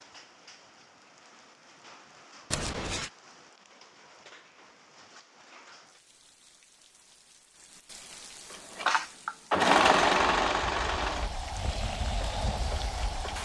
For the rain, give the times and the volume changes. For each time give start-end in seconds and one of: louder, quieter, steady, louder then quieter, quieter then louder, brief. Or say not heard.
0.0-13.4 louder.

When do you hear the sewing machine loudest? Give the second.
10 s.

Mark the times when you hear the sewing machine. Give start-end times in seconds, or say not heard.
8.5-13.4.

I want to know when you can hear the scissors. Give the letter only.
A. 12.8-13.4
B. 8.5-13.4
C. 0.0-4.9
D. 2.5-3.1
D.